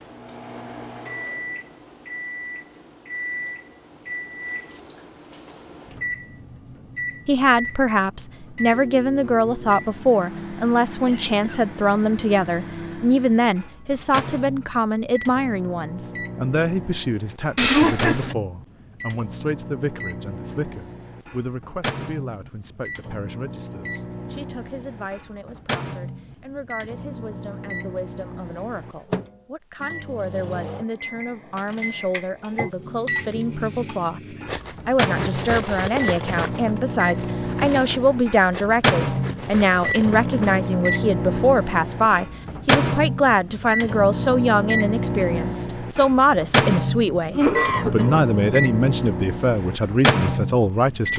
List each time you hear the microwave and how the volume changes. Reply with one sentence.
The microwave can be heard from 0.0 to 51.1 s, getting louder.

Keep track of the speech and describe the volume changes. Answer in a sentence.
The volume of the speech goes down, then up.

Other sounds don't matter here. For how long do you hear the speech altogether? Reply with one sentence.
You can hear the speech for 44 seconds altogether.